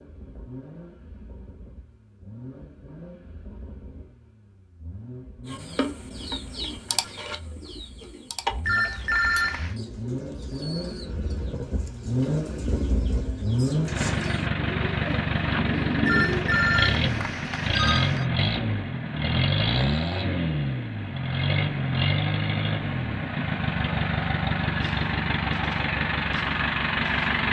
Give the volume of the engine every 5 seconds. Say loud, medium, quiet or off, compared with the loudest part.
quiet, quiet, loud, loud, loud, loud.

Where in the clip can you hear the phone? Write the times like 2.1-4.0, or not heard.
8.7-9.8, 16.1-18.2.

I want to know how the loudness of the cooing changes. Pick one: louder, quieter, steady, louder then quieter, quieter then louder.
quieter then louder.